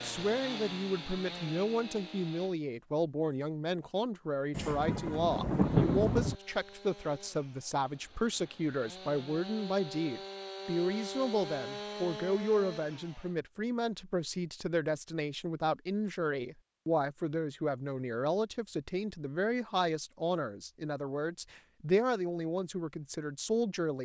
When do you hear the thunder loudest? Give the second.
6 s.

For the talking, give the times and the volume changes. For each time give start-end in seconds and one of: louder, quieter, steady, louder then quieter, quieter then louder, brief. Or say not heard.
0.0-23.9 steady.